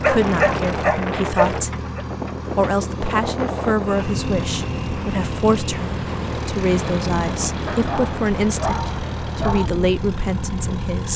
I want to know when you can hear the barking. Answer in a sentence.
You can hear the barking from 0.0 to 2.0 s and from 7.7 to 9.7 s.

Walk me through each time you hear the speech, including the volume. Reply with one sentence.
You can hear the speech briefly from 0.0 to 1.7 s; and from 2.5 to 11.1 s, at a steady volume.